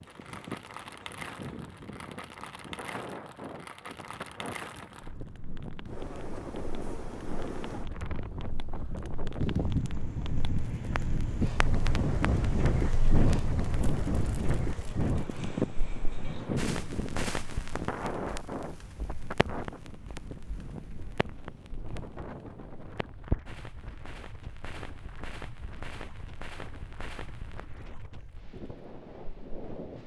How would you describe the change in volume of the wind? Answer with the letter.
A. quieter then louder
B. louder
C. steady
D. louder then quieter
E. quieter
D.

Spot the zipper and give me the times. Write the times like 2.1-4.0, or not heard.
not heard.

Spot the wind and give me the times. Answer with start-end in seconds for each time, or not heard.
0.0-30.0.